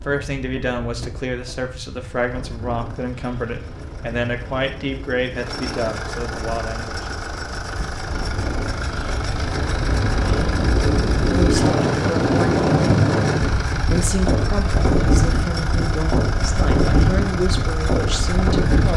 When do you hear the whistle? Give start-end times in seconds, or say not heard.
not heard.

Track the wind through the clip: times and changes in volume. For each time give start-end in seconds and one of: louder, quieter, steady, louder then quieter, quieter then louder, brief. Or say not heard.
0.1-18.9 louder.